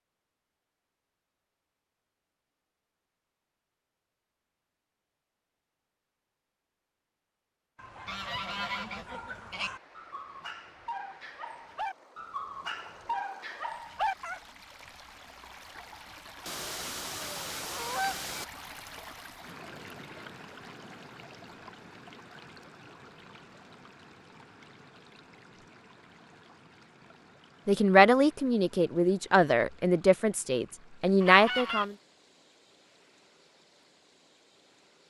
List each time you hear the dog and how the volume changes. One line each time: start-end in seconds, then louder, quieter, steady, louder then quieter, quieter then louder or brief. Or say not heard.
7.8-14.4 louder.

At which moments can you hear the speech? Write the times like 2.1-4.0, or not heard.
27.6-31.9.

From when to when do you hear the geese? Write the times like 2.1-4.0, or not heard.
8.1-9.7, 16.4-18.4, 31.2-31.9.